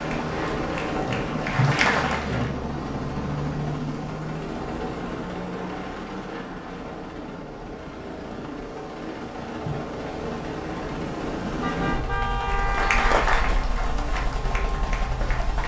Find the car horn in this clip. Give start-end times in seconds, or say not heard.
11.6-13.1.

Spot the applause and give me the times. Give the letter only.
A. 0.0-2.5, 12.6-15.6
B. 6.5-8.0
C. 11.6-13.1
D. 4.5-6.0
A.